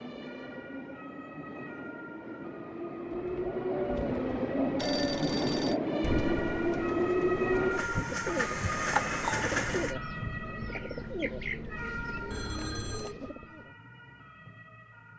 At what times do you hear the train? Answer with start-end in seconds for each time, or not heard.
0.0-9.9.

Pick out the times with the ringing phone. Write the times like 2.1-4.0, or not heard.
4.8-5.8, 12.3-13.2.